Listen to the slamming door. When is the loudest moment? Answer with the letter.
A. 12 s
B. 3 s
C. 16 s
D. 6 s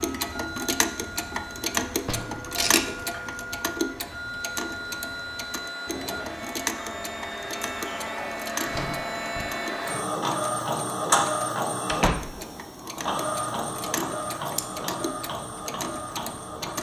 A.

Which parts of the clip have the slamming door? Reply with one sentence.
The slamming door can be heard from 1.9 to 2.5 s, from 8.6 to 9.6 s and from 11.8 to 12.4 s.